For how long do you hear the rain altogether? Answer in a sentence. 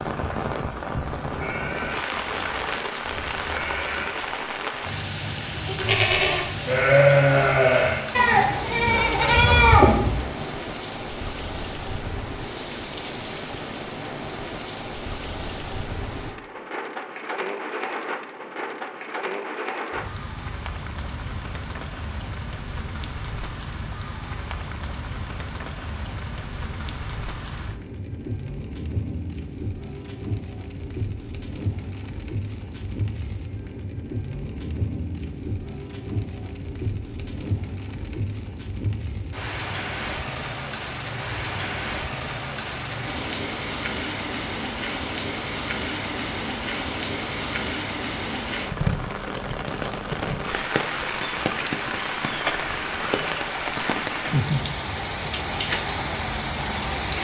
You can hear the rain for 57 seconds altogether.